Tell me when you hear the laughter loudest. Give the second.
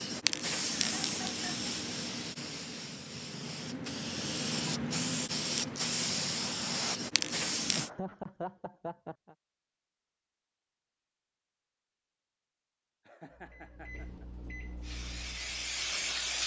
8 s.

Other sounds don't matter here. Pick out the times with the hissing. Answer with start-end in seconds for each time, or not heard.
0.0-7.9, 14.8-16.4.